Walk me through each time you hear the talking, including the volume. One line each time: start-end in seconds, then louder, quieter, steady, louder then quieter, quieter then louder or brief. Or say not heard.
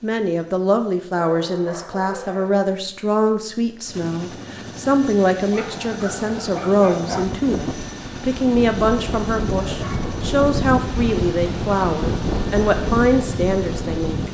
0.0-14.2 steady.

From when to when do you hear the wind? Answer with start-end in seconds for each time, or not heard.
6.9-14.2.